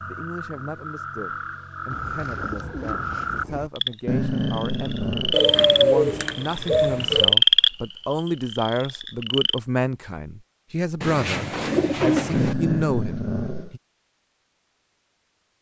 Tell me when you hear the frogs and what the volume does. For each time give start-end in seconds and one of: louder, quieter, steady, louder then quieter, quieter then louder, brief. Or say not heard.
0.0-9.6 louder.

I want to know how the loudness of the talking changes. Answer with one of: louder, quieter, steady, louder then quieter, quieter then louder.
louder.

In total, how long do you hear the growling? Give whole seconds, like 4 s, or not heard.
3 s.